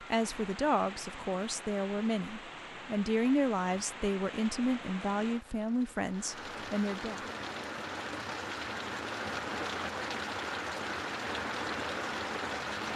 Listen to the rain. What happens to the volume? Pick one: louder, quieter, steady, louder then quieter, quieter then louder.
louder.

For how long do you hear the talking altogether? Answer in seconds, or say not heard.
7 s.